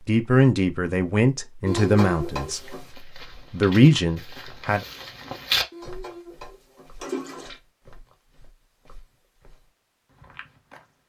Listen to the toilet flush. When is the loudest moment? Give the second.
2 s.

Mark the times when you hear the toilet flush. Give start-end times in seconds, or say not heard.
1.6-2.9, 5.7-7.5.